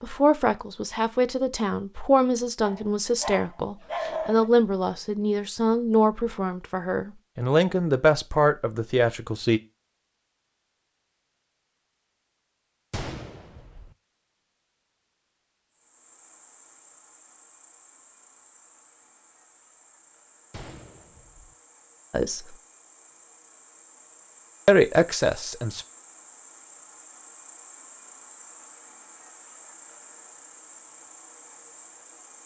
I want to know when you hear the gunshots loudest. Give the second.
13 s.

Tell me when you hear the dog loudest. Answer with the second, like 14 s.
4 s.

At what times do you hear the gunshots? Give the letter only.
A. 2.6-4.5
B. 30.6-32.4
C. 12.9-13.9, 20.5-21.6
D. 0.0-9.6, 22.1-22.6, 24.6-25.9
C.